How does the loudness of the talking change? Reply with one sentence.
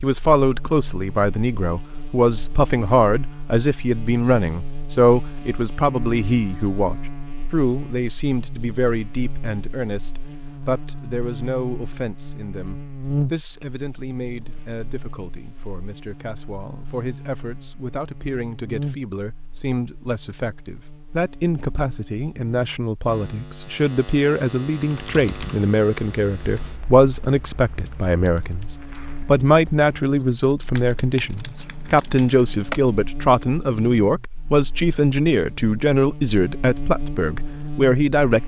The loudness of the talking goes down, then up.